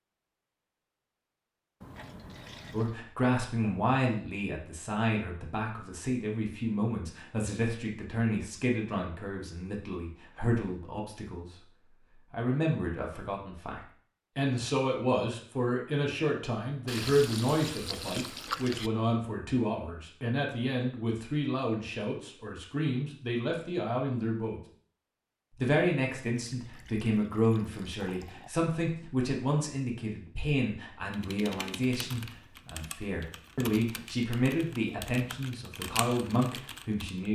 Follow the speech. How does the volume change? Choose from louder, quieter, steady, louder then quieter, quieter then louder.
steady.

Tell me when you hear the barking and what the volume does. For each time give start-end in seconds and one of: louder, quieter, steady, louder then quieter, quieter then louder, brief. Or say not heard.
not heard.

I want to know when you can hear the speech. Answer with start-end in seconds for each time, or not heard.
2.7-24.6, 25.5-37.3.